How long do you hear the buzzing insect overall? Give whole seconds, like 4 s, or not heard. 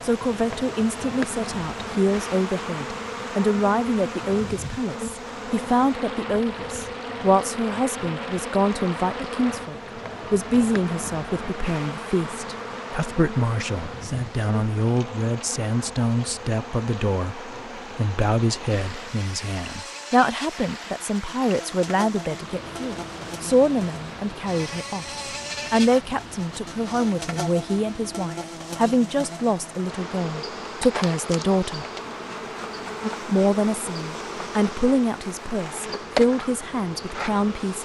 38 s.